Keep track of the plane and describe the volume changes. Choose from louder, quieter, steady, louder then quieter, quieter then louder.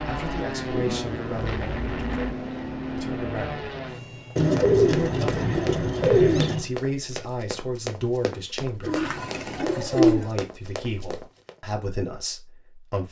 steady.